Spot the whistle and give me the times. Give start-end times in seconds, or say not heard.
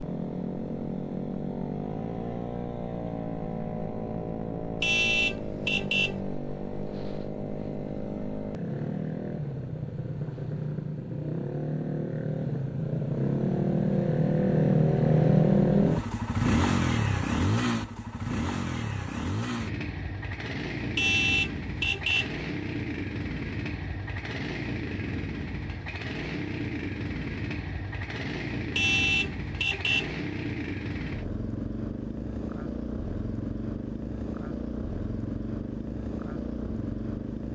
not heard.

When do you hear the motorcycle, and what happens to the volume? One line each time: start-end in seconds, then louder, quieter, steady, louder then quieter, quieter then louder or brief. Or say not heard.
0.0-37.5 louder then quieter.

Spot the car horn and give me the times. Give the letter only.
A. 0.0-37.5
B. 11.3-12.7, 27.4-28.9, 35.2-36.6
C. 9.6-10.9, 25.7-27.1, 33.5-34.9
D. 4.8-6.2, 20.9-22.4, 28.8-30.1
D.